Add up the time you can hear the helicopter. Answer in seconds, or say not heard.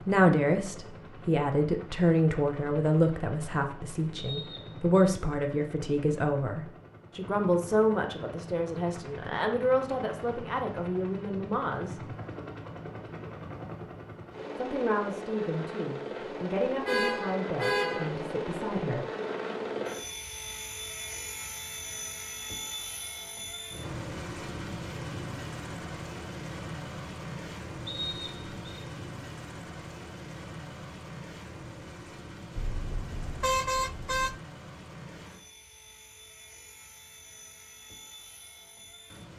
39 s.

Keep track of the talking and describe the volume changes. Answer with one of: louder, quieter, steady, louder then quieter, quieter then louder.
quieter.